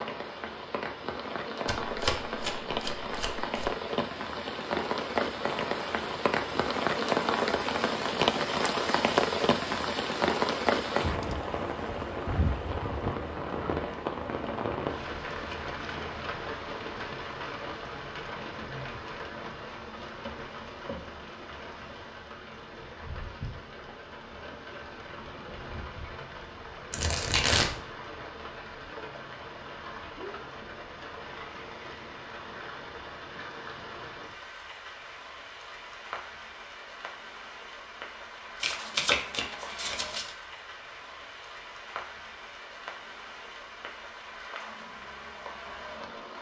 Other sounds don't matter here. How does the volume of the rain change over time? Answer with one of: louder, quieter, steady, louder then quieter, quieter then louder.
quieter.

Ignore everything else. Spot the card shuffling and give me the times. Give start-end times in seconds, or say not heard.
1.6-3.7, 26.9-27.8, 38.6-40.4.